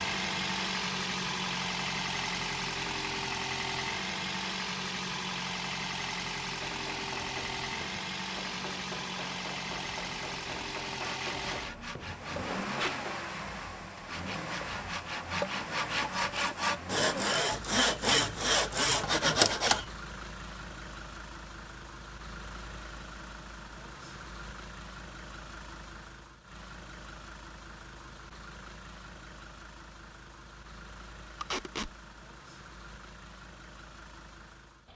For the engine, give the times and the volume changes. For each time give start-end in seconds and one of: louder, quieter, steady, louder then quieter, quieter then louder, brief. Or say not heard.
0.0-34.9 quieter.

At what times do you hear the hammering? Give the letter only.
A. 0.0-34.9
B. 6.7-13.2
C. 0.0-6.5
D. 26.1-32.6
B.